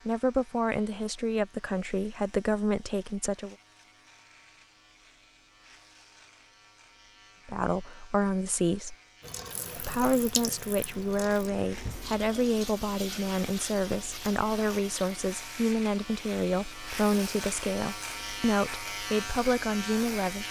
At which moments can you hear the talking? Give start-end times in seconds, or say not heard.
0.1-3.5, 7.5-8.9, 9.8-20.4.